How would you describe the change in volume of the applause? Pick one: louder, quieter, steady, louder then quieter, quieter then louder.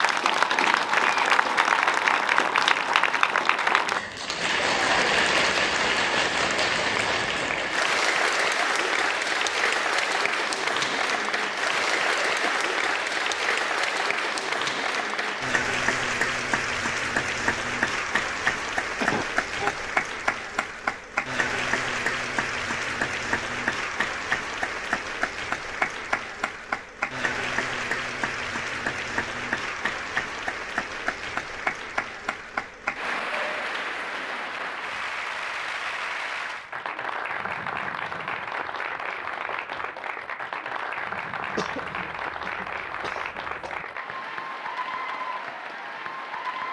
quieter.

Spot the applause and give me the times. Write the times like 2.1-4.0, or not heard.
0.0-46.6.